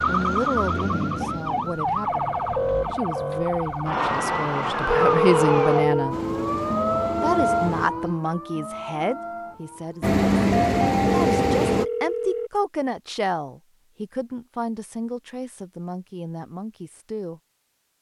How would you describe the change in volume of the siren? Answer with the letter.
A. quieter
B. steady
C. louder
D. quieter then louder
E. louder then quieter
A.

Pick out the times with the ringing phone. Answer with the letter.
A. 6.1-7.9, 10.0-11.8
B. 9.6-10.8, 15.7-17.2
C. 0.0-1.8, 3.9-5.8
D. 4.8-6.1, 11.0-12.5
D.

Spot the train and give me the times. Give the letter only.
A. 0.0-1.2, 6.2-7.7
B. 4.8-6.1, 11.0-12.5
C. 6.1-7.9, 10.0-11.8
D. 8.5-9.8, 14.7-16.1
C.